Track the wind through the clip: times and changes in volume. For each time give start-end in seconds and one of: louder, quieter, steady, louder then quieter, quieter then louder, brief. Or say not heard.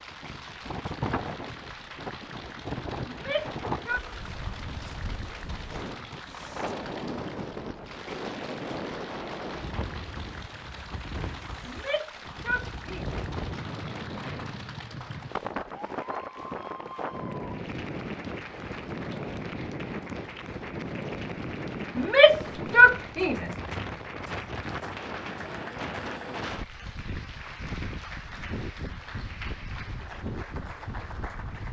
0.0-31.6 steady.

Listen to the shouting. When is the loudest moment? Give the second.
23 s.